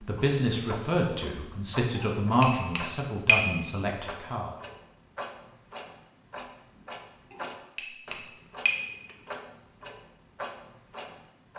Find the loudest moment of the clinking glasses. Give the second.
3 s.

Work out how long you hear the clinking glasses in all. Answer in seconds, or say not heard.
3 s.